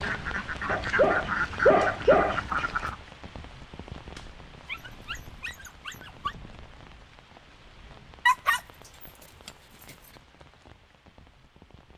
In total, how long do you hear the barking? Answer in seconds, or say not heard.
5 s.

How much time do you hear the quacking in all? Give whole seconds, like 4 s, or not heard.
3 s.